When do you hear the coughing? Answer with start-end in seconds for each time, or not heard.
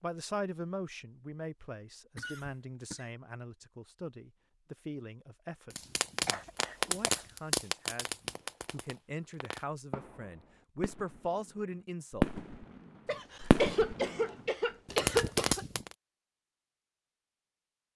2.1-3.0, 6.2-7.3, 13.1-15.7.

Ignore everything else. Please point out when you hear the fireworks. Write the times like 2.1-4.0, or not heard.
5.7-15.9.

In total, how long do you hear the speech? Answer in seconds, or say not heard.
12 s.